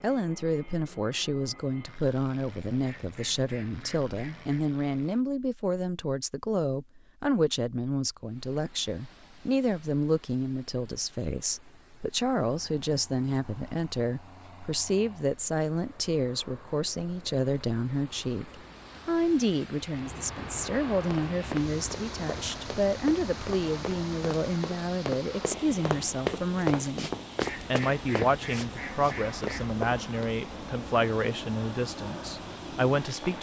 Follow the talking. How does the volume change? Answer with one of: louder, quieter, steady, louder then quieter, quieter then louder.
steady.